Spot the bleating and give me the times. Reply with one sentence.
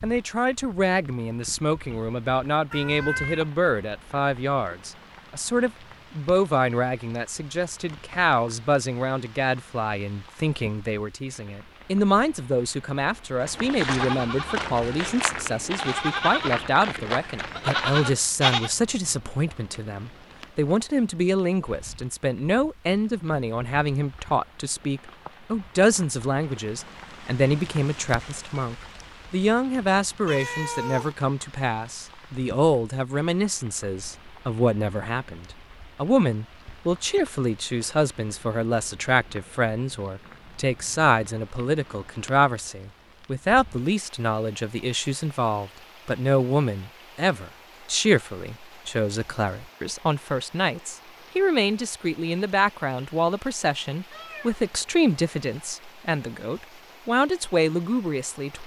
The bleating can be heard from 13.4 to 18.7 s.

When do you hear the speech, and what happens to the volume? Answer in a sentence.
The speech can be heard from 0.0 to 58.6 s, at a steady volume.